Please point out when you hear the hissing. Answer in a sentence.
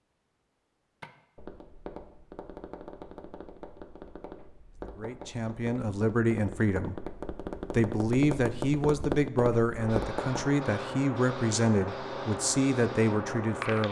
The hissing can be heard from 9.8 to 13.8 s.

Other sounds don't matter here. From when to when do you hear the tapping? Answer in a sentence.
The tapping can be heard from 1.0 to 10.5 s.